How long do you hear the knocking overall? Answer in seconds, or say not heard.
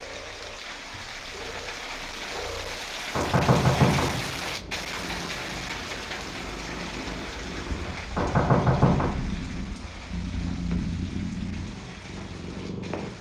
2 s.